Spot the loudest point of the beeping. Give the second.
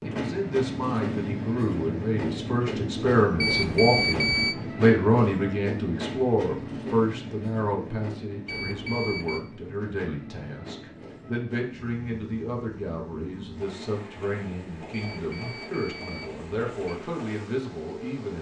4 s.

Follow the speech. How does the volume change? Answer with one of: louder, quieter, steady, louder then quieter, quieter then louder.
quieter.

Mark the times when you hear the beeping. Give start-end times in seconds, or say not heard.
3.4-4.5, 8.4-9.4, 14.9-16.9.